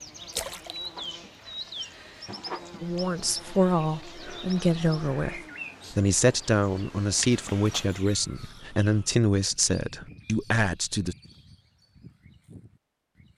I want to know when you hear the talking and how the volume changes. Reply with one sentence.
The talking can be heard from 2.8 to 11.2 s, at a steady volume.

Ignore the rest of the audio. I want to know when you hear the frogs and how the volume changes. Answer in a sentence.
The frogs can't be heard in this clip.